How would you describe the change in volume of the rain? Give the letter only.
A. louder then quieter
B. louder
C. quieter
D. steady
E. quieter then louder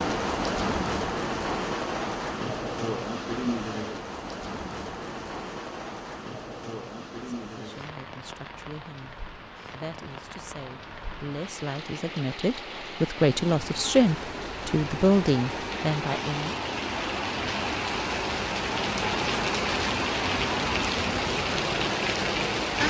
E.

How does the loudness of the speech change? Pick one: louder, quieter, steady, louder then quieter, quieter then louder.
louder.